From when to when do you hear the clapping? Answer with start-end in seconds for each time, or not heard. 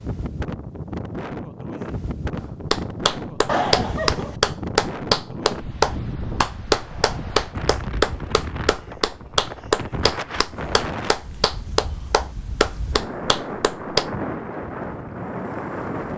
2.7-14.1.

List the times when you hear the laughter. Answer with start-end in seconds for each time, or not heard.
3.5-4.3.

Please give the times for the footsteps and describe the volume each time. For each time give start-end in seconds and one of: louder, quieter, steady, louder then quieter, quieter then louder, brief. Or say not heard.
not heard.